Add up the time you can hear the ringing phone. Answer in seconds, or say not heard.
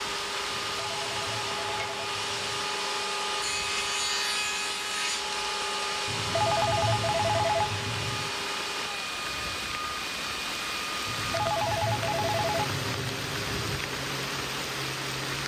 7 s.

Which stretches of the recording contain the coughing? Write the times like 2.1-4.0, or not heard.
not heard.